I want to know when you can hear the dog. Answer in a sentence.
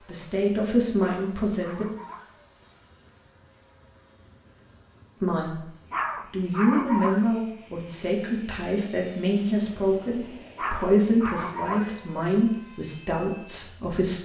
You can hear the dog from 0.9 to 2.4 s, from 5.9 to 7.3 s and from 10.6 to 12.0 s.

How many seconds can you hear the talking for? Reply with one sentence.
The talking can be heard for 10 seconds in total.